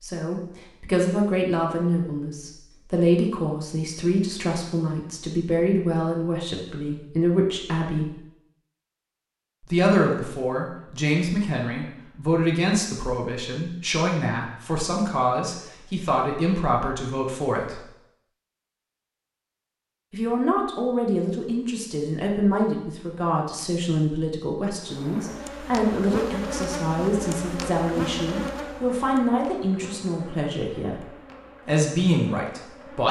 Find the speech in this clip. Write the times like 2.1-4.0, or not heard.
0.0-8.1, 9.6-17.8, 20.1-31.1, 31.6-33.0.